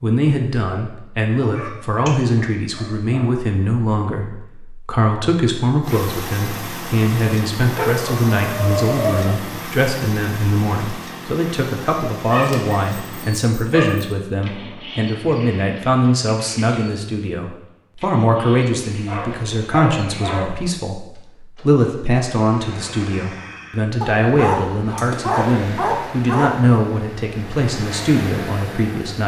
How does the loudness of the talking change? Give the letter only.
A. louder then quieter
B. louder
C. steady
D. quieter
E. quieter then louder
C.